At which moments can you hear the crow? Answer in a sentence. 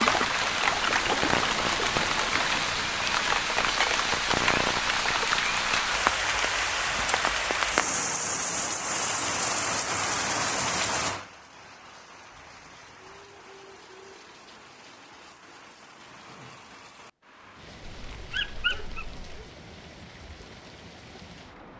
You can't hear the crow here.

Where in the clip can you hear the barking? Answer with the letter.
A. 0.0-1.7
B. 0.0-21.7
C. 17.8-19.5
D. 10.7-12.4
C.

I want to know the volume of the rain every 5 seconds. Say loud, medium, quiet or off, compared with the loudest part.
loud, loud, medium, quiet, quiet.